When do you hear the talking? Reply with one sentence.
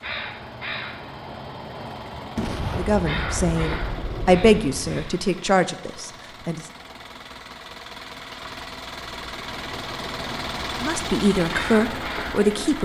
You can hear the talking from 2.8 to 6.7 s and from 10.8 to 12.8 s.